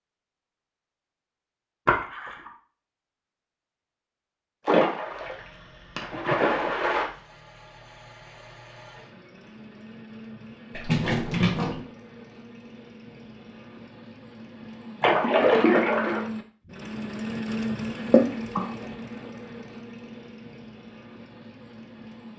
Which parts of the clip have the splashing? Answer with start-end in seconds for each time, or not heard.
1.9-2.5, 4.7-7.1, 10.7-11.8, 15.0-16.2, 18.1-18.7.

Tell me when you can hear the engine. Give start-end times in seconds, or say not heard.
5.0-22.3.